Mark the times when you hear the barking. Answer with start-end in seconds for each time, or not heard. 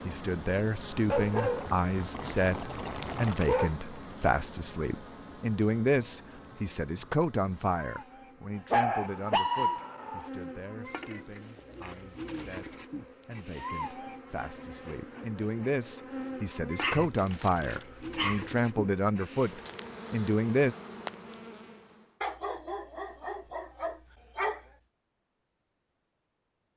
1.1-3.8, 8.7-10.3, 16.8-18.5, 22.2-24.6.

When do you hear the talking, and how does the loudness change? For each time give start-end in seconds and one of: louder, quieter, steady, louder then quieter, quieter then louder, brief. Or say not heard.
0.1-20.8 quieter then louder.